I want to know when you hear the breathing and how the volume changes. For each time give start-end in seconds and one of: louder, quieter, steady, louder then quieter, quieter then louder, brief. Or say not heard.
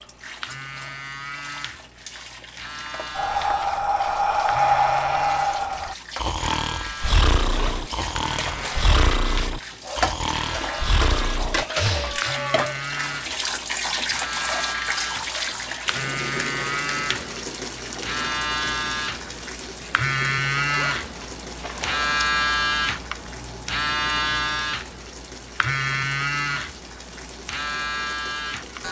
3.1-12.7 quieter.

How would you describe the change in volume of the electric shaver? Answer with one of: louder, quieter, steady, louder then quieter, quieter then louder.
louder.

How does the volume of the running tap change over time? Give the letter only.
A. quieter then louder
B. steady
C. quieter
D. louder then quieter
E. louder
D.